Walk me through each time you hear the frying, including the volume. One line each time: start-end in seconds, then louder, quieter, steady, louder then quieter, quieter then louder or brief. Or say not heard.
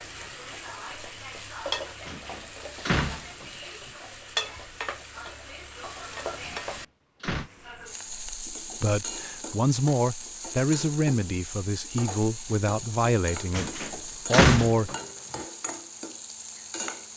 0.0-17.1 steady.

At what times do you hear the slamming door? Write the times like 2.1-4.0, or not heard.
2.0-3.5, 6.4-7.5, 13.5-15.4.